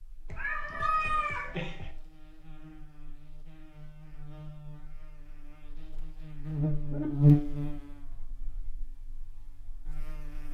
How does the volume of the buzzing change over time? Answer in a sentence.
The loudness of the buzzing goes up, then down.